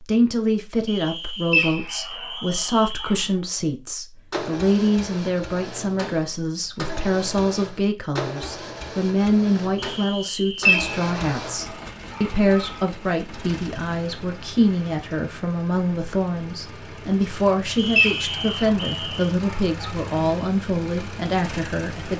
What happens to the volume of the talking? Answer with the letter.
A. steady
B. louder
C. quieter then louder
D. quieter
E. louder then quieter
A.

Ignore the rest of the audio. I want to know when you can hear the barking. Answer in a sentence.
You can hear the barking from 1.5 to 3.2 s, from 10.7 to 12.8 s and from 17.9 to 19.9 s.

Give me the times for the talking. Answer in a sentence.
You can hear the talking from 0.0 to 22.1 s.